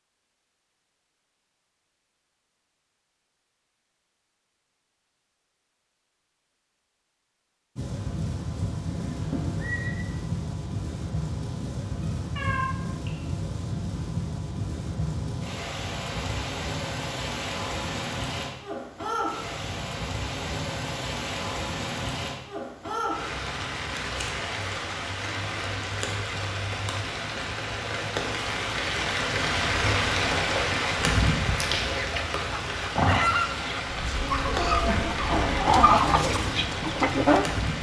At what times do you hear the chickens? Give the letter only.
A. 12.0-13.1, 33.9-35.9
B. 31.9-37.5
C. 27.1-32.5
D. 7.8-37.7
B.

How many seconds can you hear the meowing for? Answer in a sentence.
The meowing can be heard for 3 seconds in total.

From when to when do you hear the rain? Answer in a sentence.
The rain can be heard from 7.8 to 37.7 s.